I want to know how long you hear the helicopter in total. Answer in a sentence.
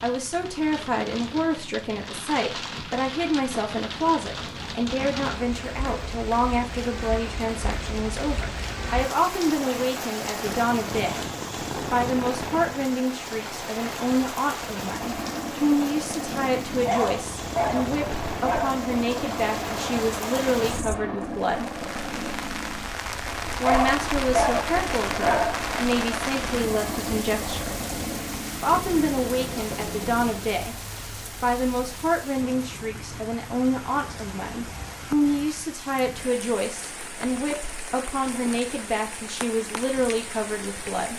You can hear the helicopter for 16 seconds altogether.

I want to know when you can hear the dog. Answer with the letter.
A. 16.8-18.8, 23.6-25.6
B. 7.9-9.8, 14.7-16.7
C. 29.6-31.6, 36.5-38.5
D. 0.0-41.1
A.